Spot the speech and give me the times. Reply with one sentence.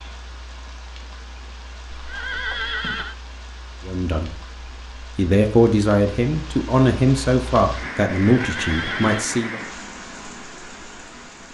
You can hear the speech from 3.9 to 9.6 s.